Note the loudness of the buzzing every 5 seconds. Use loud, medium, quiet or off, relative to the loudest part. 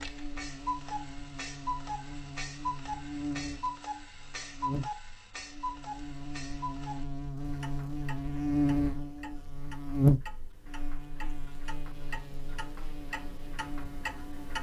medium, loud, loud.